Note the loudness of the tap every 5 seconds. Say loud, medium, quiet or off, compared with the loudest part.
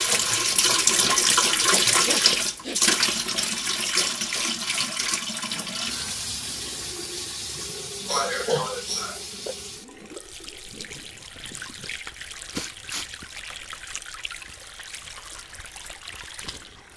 loud, medium, quiet, quiet.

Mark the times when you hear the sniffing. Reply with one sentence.
The sniffing can be heard from 1.6 to 3.5 s, from 8.1 to 9.6 s and from 12.5 to 13.6 s.